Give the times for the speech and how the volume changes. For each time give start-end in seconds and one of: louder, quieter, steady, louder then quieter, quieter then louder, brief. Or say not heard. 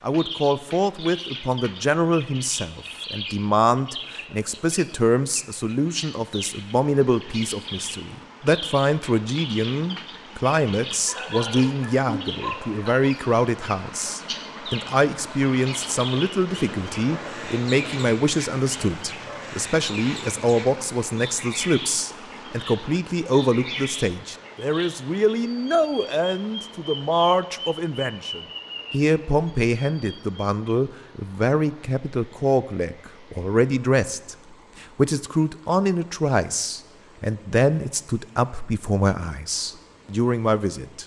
0.0-41.0 steady.